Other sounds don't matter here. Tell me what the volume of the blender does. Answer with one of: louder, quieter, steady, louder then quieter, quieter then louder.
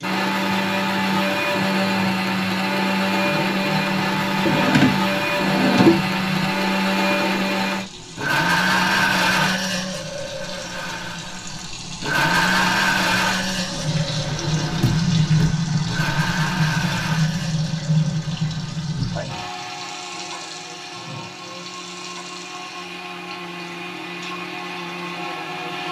quieter.